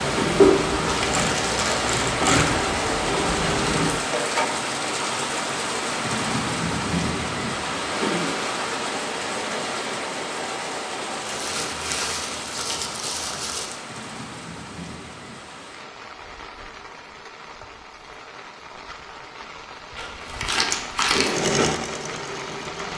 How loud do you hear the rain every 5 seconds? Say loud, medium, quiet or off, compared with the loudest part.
loud, loud, medium, quiet, medium.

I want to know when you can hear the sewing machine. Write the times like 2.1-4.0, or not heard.
0.0-4.5, 21.2-22.9.